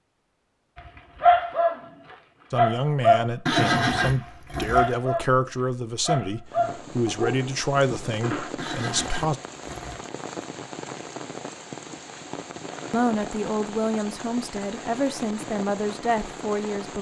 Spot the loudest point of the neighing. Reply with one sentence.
The loudest moment of the neighing is at 4 seconds.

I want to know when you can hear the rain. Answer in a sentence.
You can hear the rain from 6.5 to 16.9 s.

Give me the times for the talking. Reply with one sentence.
You can hear the talking from 2.5 to 9.3 s and from 12.9 to 16.9 s.